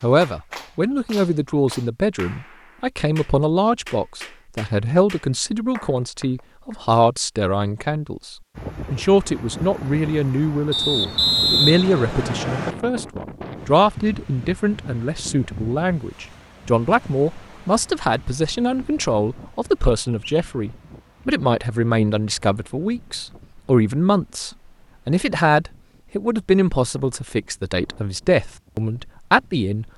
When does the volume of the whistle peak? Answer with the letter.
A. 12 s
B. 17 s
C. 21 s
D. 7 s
A.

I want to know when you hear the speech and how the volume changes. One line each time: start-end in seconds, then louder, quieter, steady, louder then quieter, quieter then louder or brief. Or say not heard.
0.0-29.9 steady.